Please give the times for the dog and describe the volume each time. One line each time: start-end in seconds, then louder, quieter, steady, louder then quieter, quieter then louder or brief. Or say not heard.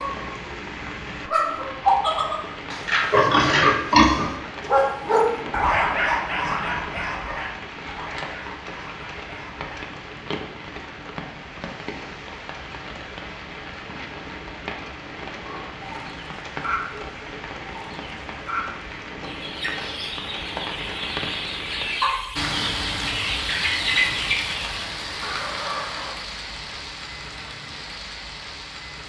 4.7-9.9 quieter.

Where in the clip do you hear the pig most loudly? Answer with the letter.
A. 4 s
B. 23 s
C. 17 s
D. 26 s
A.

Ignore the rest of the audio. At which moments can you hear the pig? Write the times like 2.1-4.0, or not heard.
2.7-4.3.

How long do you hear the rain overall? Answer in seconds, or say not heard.
29 s.